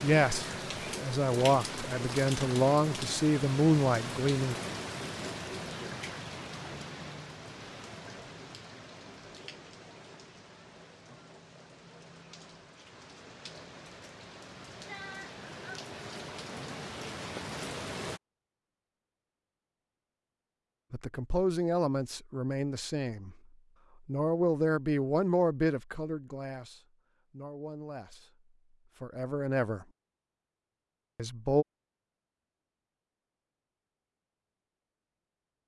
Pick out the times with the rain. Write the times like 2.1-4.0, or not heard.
0.0-18.2.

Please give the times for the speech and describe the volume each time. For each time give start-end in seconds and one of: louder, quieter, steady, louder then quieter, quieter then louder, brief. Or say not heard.
0.0-4.6 louder
20.9-23.4 brief
24.1-28.3 quieter
29.0-29.9 brief
31.1-31.6 brief.